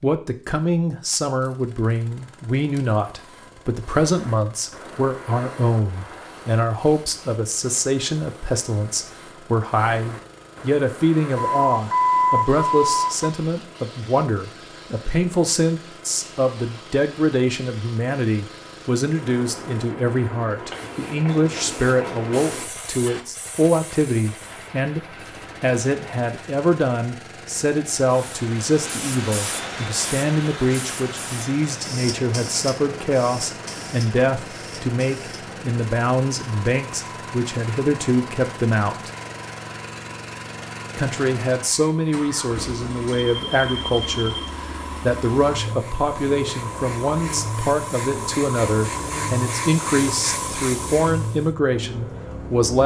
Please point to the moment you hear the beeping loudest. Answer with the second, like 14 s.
12 s.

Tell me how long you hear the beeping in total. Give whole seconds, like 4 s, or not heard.
3 s.